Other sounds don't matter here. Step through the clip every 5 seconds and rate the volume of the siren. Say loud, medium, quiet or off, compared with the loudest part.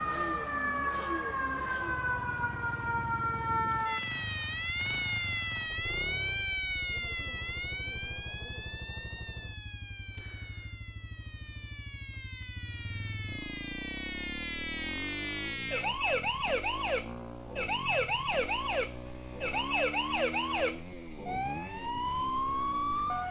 loud, loud, medium, loud, loud.